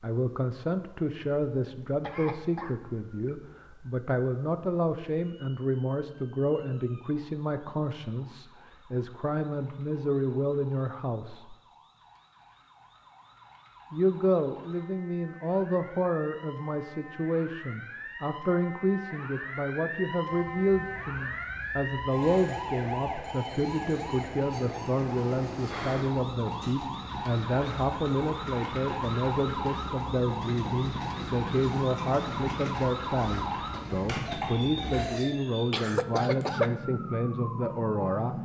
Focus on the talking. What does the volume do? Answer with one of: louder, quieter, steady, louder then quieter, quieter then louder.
steady.